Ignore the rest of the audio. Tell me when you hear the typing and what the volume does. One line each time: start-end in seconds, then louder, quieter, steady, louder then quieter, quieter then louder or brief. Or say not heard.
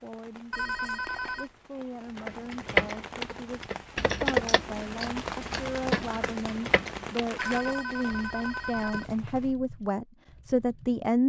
2.1-11.2 quieter.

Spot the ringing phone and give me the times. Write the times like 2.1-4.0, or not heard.
0.5-1.4, 7.3-9.2.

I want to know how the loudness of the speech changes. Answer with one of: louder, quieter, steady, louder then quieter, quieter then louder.
louder.